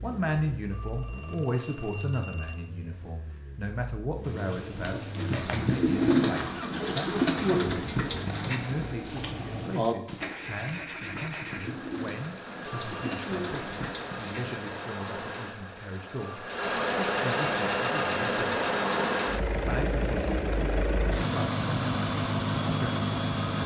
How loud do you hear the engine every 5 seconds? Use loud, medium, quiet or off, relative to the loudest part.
quiet, medium, medium, loud, loud.